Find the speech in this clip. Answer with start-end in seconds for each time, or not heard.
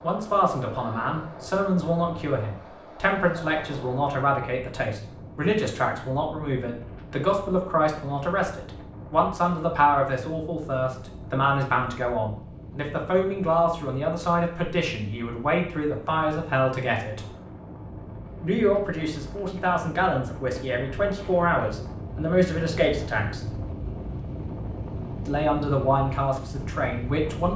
0.0-17.2, 18.4-23.4, 25.2-27.5.